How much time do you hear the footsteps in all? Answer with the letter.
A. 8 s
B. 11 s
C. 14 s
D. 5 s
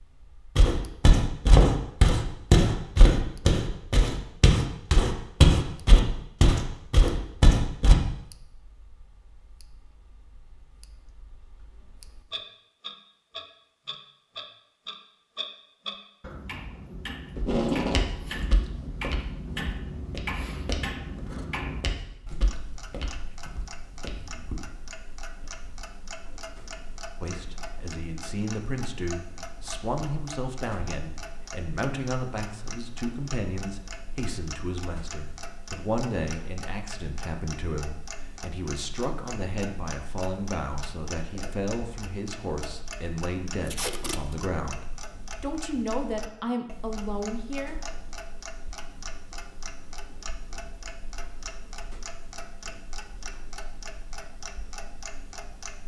C.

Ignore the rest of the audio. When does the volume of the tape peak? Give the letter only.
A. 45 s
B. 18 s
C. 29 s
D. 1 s
B.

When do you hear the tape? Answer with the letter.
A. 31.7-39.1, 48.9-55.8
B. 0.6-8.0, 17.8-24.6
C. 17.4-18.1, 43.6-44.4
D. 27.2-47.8
C.